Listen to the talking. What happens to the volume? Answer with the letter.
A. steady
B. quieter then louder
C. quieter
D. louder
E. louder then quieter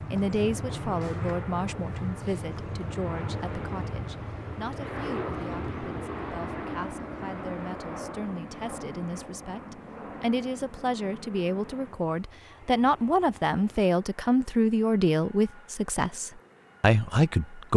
B.